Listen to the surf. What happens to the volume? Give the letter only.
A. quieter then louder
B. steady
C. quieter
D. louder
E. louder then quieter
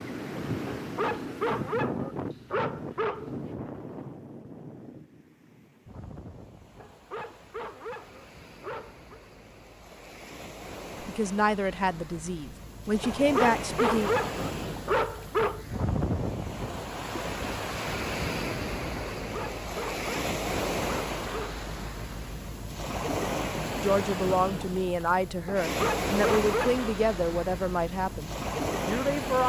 A.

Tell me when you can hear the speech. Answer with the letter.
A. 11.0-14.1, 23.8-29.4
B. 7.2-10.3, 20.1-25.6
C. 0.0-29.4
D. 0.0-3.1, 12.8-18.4
A.